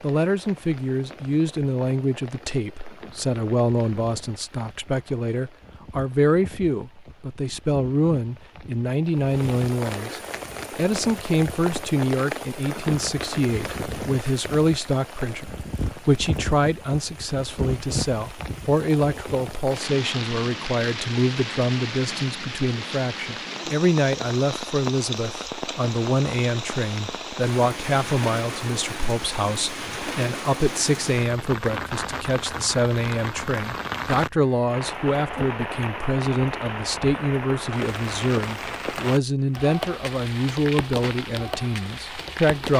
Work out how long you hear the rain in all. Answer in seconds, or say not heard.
43 s.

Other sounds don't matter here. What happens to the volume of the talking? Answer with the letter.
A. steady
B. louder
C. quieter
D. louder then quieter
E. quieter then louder
A.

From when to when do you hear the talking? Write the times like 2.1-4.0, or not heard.
0.0-42.7.